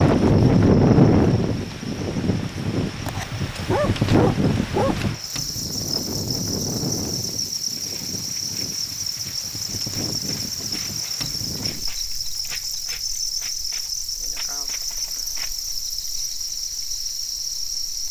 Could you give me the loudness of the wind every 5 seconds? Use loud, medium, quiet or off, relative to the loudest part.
loud, quiet, quiet, quiet.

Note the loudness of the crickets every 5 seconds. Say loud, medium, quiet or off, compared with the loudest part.
quiet, loud, loud, loud.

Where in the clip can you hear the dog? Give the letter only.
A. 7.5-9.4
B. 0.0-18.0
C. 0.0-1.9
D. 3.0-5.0
D.